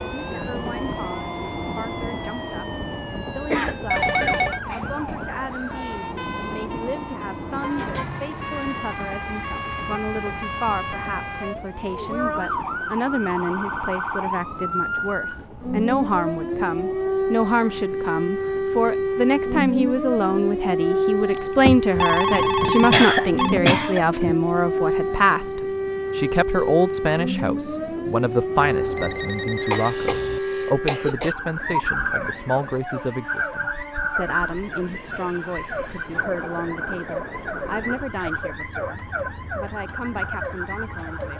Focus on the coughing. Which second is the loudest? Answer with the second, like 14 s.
23 s.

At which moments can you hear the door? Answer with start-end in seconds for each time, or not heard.
not heard.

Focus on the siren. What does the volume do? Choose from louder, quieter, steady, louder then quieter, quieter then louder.
louder then quieter.